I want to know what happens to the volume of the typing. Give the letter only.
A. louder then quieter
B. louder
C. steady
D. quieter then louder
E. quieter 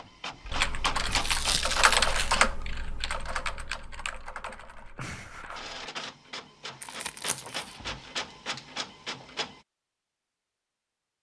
A.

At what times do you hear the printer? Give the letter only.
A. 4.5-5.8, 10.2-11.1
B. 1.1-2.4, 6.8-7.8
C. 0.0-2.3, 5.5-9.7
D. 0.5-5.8
C.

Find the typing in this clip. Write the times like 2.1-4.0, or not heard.
0.5-5.8.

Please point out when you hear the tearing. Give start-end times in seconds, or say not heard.
1.1-2.4, 6.8-7.8.